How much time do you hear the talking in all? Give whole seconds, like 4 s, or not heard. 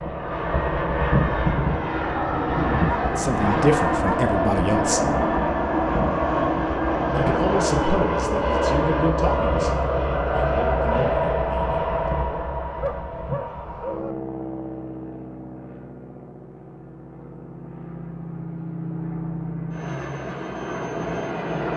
7 s.